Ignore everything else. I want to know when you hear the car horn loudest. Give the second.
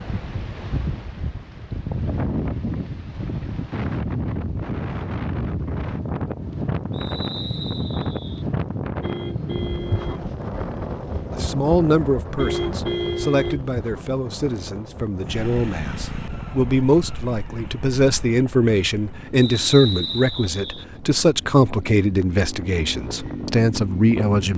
13 s.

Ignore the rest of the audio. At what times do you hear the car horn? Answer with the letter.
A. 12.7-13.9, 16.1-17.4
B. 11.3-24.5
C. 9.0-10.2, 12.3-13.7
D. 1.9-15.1
C.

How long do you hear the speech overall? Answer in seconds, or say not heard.
13 s.